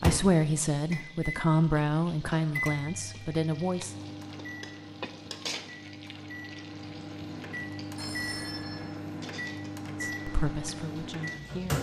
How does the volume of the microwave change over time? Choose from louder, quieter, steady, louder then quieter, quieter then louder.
quieter then louder.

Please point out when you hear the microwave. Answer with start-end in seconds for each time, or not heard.
0.0-11.7.